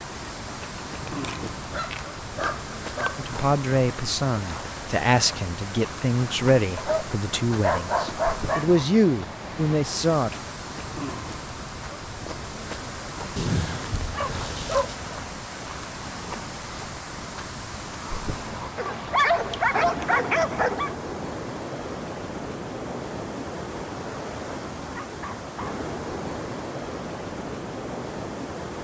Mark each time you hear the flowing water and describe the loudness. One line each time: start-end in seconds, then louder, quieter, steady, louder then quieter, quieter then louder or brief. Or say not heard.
0.0-28.7 steady.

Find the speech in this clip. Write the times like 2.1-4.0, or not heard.
3.1-10.3.